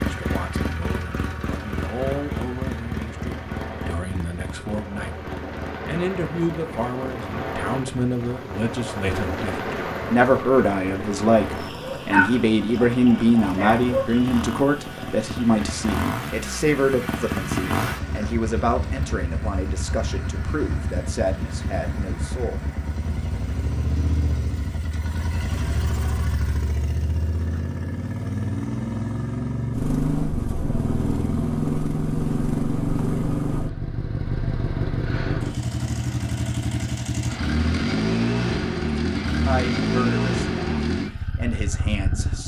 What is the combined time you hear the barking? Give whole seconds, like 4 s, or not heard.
2 s.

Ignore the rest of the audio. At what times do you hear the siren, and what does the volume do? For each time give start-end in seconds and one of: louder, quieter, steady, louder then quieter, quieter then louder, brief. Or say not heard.
not heard.